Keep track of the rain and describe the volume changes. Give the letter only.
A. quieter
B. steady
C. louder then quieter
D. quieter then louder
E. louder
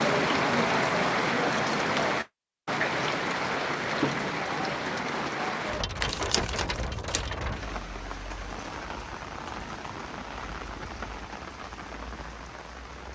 A.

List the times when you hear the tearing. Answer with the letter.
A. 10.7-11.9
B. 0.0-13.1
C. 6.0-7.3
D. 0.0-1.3
C.